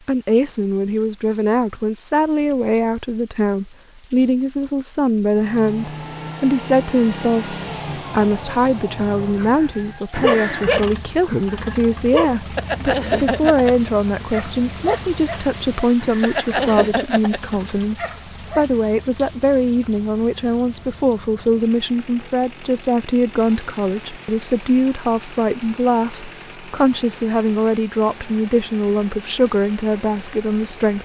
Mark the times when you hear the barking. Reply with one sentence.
You can hear the barking from 9.3 to 18.6 s.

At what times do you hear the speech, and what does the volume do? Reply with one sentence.
The speech can be heard from 0.1 to 31.0 s, at a steady volume.